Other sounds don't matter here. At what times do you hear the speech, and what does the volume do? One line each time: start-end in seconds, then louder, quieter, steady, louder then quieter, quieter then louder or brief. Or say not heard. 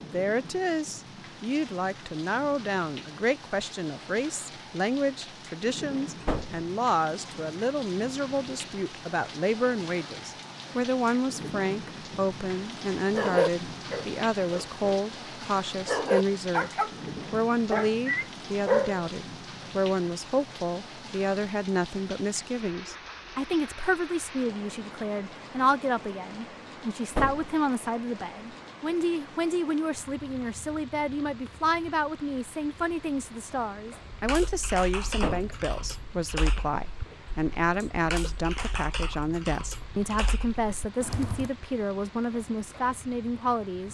0.0-16.7 steady
17.3-43.8 steady.